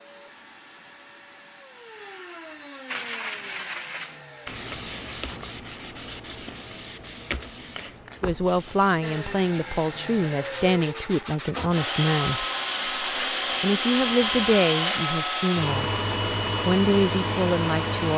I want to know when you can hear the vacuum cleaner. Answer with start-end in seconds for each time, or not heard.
0.0-4.5, 9.0-18.1.